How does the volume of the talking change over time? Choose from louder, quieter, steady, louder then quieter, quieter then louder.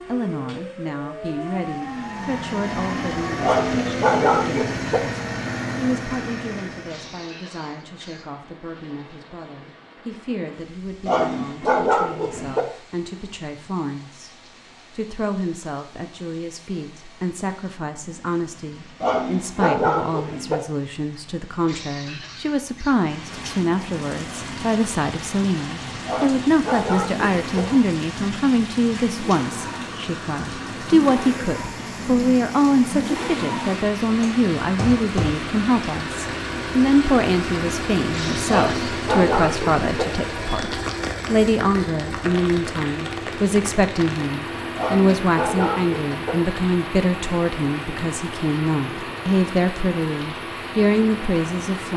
louder.